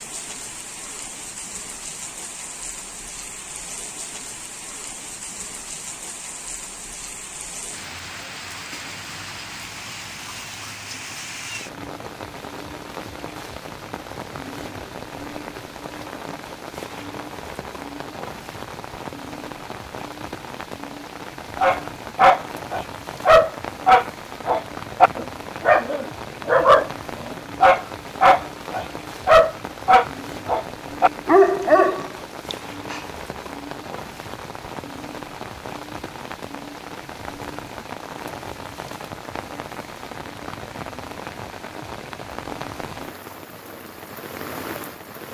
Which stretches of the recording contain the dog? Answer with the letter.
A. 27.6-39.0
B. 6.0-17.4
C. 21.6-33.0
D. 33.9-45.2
C.